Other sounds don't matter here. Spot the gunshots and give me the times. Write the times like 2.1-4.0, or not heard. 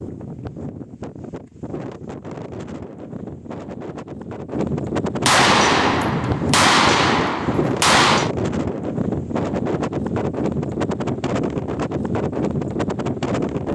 5.2-8.3.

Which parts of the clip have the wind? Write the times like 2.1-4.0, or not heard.
0.0-13.6.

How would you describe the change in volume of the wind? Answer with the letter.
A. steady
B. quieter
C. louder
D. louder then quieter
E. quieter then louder
C.